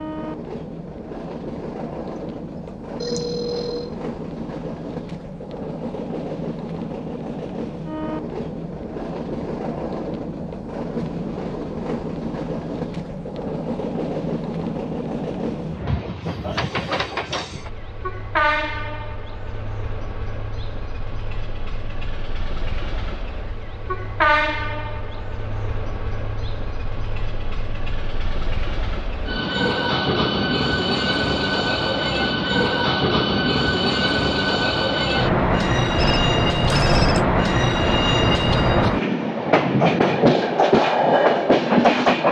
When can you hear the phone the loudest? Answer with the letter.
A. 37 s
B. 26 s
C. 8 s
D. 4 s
A.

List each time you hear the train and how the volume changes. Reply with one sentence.
The train can be heard from 0.0 to 42.2 s, getting louder.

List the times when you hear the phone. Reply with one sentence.
You can hear the phone from 3.0 to 3.9 s and from 36.0 to 37.2 s.